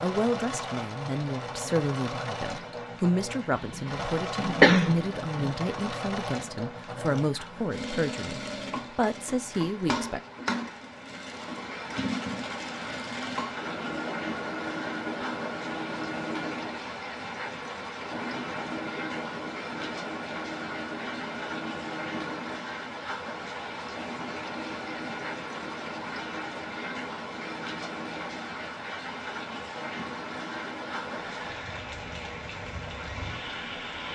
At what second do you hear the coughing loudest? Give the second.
5 s.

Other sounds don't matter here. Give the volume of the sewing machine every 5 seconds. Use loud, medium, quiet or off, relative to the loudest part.
loud, loud, loud, loud, loud, medium, medium.